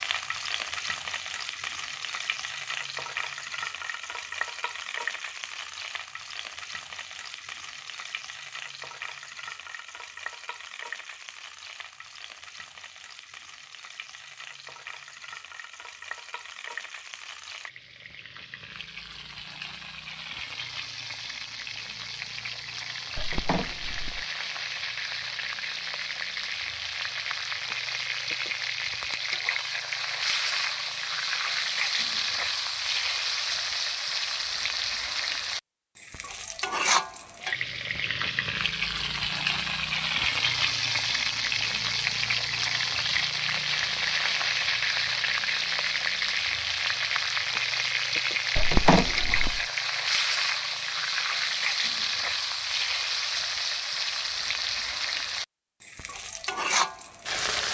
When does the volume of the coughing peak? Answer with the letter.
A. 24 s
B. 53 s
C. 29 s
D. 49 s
D.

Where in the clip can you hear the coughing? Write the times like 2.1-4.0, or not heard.
23.1-24.2, 48.5-49.6.